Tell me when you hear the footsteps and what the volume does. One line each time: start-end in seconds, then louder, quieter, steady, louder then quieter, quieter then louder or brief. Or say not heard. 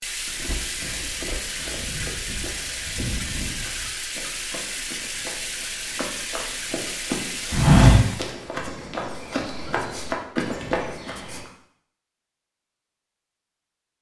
0.2-11.4 louder then quieter.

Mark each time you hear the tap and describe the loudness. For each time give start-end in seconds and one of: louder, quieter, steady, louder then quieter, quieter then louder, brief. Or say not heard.
0.0-8.3 steady.